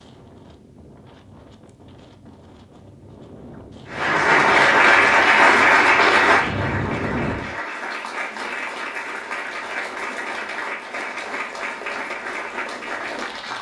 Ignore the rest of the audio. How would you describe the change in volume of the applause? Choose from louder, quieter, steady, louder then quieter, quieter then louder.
quieter.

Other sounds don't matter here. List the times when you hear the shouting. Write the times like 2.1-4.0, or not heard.
not heard.